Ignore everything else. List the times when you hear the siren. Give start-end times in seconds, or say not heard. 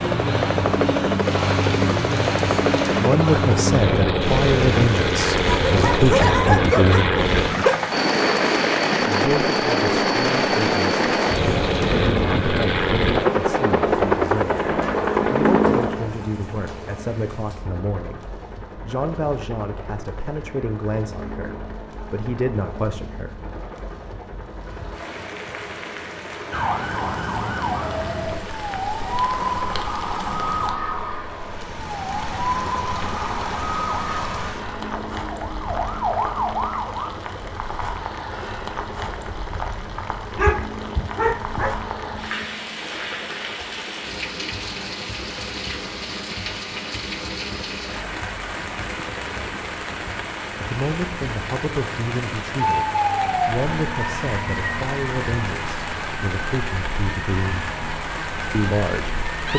26.5-37.1, 52.9-59.5.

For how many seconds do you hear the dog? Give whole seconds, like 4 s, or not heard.
4 s.